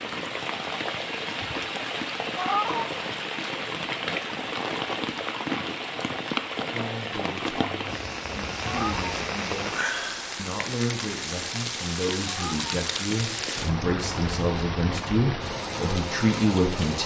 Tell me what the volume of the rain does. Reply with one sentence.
The loudness of the rain stays about the same.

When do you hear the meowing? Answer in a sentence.
You can hear the meowing from 2.4 to 2.9 s, from 8.7 to 9.2 s and from 12.2 to 12.7 s.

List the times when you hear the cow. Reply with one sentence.
You can't hear the cow here.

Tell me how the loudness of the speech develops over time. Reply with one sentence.
The loudness of the speech goes up.